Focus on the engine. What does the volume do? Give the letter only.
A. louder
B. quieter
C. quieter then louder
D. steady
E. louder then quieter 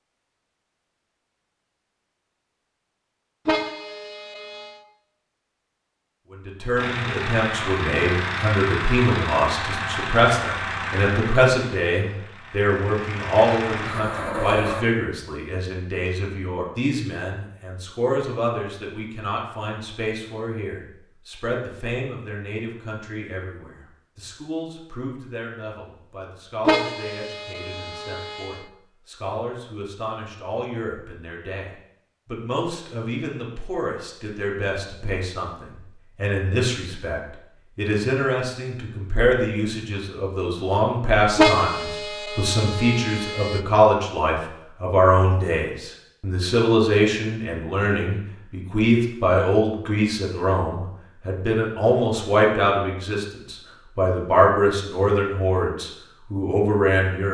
C.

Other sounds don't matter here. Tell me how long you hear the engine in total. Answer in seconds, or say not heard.
8 s.